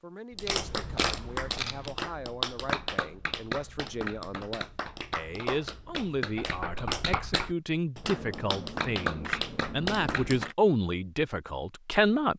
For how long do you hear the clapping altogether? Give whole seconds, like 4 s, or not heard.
10 s.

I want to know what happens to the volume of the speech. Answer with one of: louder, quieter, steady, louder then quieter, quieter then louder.
louder.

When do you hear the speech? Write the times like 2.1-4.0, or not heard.
0.0-12.3.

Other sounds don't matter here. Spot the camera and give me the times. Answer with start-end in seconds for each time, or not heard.
0.5-1.9, 8.0-10.6.